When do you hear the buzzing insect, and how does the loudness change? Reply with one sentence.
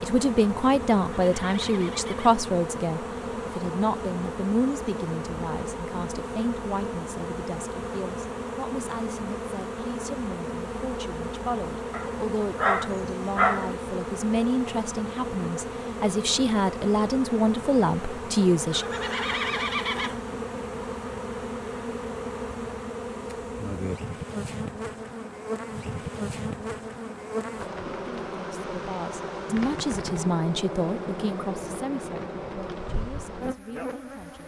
The buzzing insect can be heard from 0.0 to 34.4 s, at a steady volume.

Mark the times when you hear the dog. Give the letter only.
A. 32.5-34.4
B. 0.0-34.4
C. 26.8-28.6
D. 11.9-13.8
D.